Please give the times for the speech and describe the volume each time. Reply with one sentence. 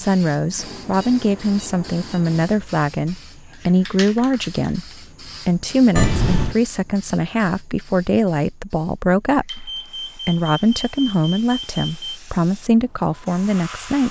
You can hear the speech from 0.0 to 14.0 s, at a steady volume.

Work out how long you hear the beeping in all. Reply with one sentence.
The beeping can be heard for 5 seconds in total.